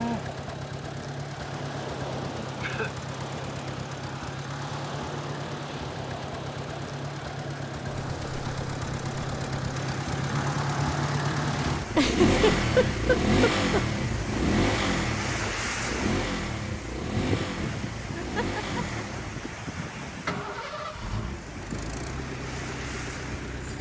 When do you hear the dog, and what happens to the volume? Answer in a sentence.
The dog can't be heard in this clip.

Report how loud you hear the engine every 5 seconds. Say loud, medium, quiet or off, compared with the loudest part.
medium, medium, loud, medium, medium.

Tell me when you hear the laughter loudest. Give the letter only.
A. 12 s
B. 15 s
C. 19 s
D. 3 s
A.